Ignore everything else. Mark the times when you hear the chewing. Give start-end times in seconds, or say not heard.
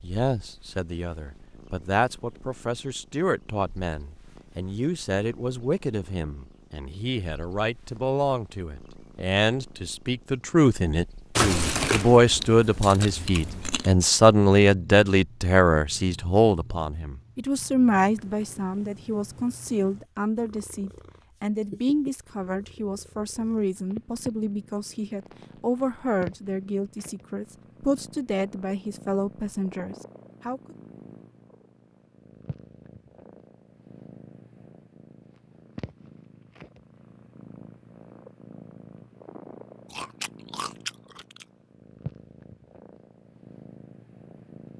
11.3-13.9, 39.9-41.5.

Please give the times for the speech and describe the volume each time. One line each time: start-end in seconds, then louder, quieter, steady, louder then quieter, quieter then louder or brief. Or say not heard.
0.0-30.8 louder then quieter.